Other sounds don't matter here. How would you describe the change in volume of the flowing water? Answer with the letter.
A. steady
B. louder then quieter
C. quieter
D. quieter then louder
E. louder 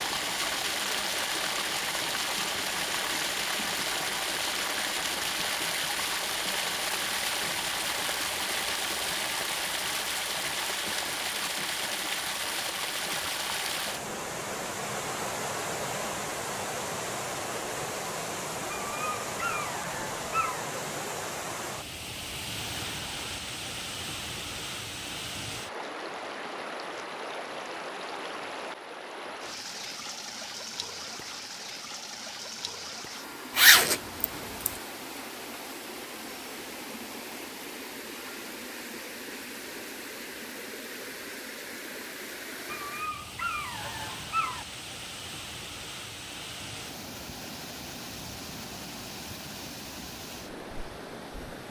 C.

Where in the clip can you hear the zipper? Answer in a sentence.
The zipper can be heard from 33.5 to 34.7 s.